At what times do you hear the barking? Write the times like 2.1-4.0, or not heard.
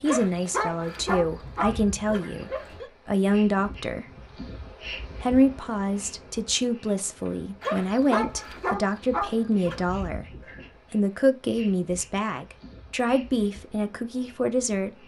0.1-2.9, 7.6-9.8.